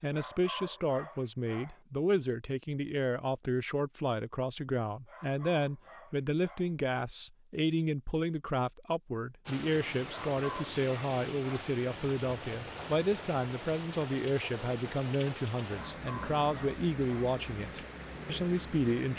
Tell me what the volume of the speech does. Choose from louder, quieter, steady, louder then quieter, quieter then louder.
steady.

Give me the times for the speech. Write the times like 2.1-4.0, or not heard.
0.0-19.1.